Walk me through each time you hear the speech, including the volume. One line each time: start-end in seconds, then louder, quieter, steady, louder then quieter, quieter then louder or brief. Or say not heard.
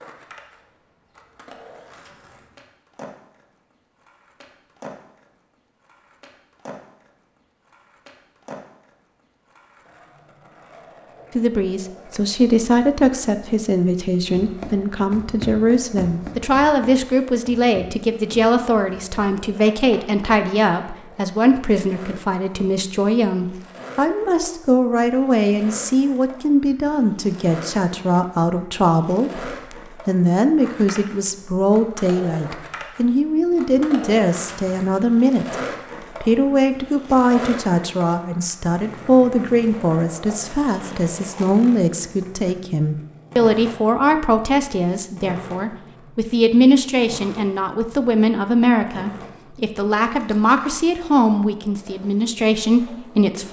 11.3-53.4 steady.